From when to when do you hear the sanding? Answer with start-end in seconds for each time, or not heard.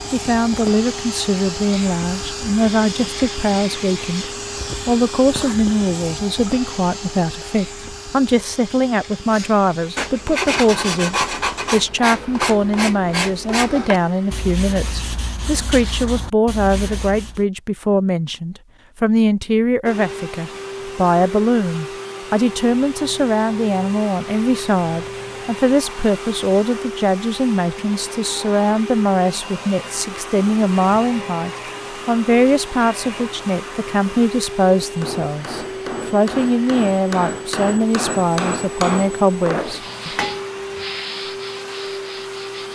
9.2-17.4, 39.6-42.7.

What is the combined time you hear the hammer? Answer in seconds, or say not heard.
6 s.